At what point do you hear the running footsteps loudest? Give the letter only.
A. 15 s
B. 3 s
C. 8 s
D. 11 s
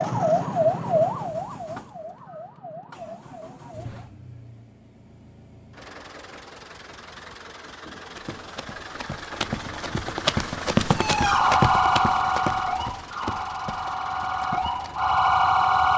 D.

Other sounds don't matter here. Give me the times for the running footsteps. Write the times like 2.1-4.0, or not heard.
8.1-15.0.